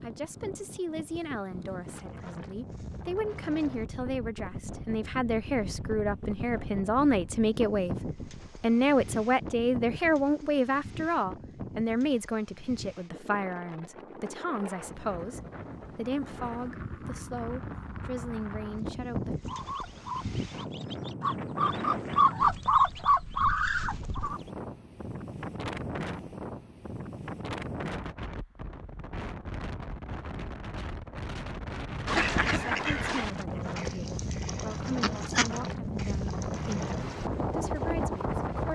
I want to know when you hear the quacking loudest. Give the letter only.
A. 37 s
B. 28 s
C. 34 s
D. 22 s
D.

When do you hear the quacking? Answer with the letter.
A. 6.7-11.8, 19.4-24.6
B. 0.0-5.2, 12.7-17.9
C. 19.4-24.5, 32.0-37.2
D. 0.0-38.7
C.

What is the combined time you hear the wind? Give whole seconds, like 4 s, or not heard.
39 s.